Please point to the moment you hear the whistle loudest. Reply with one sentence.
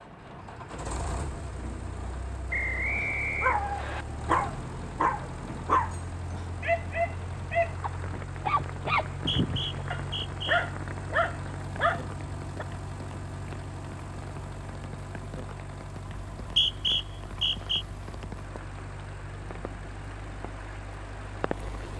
The loudest moment of the whistle is at 17 seconds.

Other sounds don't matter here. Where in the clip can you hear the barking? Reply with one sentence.
The barking can be heard from 3.0 to 12.7 s.